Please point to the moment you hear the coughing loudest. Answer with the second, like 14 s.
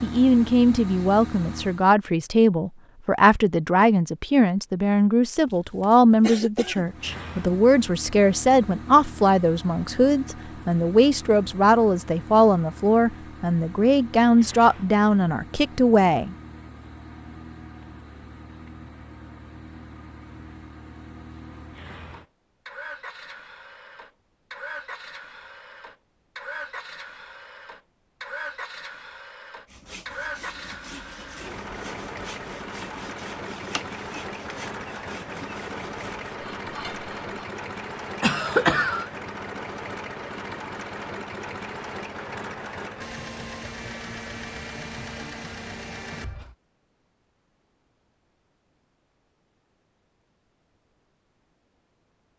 39 s.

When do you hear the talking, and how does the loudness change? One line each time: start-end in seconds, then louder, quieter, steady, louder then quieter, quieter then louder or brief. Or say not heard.
0.0-16.4 steady.